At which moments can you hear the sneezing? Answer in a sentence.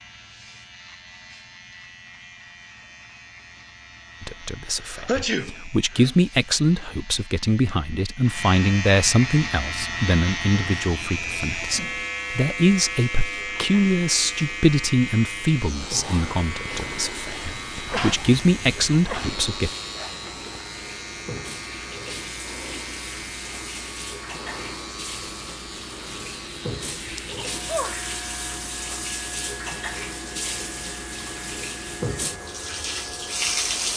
The sneezing can be heard from 4.7 to 6.2 s, from 17.9 to 19.4 s and from 27.3 to 28.1 s.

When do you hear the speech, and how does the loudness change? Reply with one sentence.
You can hear the speech from 4.2 to 19.7 s, at a steady volume.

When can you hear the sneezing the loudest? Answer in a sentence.
The loudest moment of the sneezing is at 5 seconds.